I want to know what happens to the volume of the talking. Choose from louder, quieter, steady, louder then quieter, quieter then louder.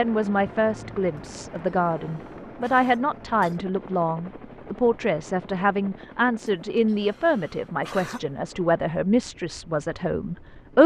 steady.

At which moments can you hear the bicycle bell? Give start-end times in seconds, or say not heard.
not heard.